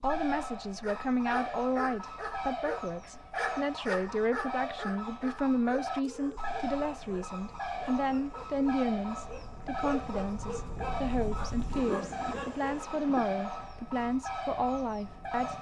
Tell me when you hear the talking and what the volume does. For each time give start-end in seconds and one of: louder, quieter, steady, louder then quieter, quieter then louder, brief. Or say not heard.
0.0-15.5 steady.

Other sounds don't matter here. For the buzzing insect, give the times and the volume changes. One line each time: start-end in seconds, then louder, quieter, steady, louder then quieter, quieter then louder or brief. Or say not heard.
not heard.